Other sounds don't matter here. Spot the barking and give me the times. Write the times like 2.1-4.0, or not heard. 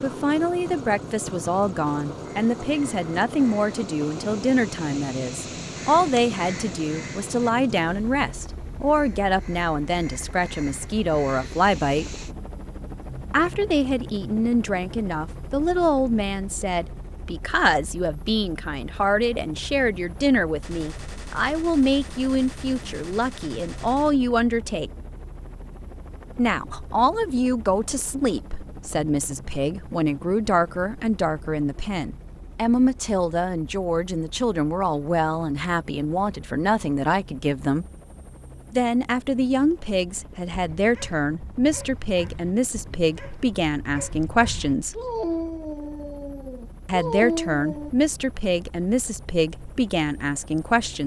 40.5-47.9.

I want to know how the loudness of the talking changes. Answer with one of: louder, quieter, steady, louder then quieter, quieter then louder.
steady.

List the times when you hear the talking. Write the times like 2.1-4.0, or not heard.
0.0-12.1, 13.3-24.9, 26.4-37.9, 38.7-45.0, 46.9-51.0.